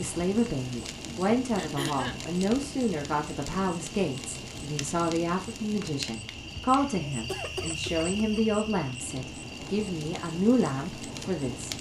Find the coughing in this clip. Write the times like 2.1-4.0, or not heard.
1.6-2.2, 6.8-8.4.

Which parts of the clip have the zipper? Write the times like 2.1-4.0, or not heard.
not heard.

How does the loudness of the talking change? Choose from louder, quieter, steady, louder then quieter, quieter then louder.
steady.